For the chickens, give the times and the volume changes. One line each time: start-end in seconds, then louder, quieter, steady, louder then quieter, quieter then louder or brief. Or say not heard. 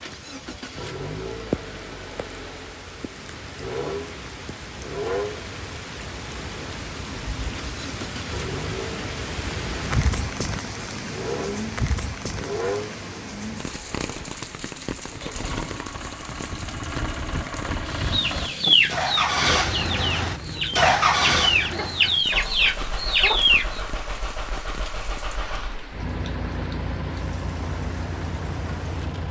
17.9-23.8 quieter then louder.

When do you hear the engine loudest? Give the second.
21 s.